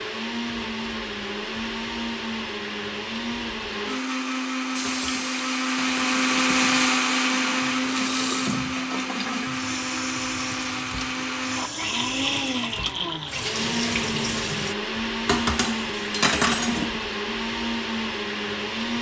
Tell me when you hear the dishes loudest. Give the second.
16 s.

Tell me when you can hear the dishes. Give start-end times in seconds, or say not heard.
4.8-6.5, 15.2-17.0.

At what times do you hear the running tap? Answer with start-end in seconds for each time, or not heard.
4.8-14.8.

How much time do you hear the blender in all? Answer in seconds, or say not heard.
19 s.